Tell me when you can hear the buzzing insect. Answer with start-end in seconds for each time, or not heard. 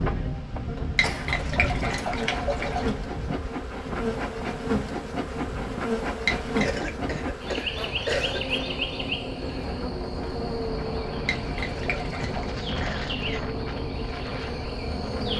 0.0-15.3.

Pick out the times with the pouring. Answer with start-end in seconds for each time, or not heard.
0.9-3.0, 6.2-6.9, 11.2-12.6.